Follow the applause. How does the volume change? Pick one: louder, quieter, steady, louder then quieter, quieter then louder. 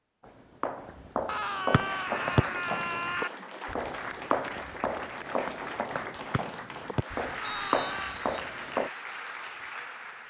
steady.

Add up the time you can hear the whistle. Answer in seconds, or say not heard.
3 s.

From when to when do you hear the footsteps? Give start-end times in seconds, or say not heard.
0.2-8.9.